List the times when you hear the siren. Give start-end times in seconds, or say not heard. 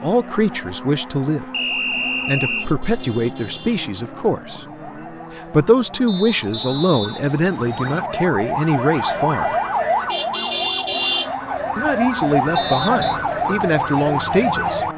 0.1-14.9.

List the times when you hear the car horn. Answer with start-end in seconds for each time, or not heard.
not heard.